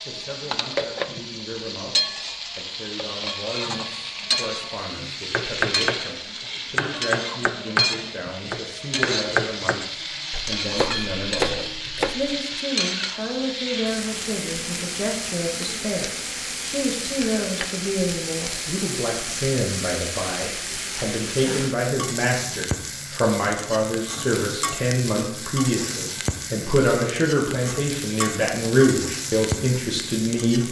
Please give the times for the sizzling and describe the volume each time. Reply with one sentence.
The sizzling can be heard from 0.0 to 30.6 s, at a steady volume.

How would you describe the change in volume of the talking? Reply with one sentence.
The volume of the talking goes up.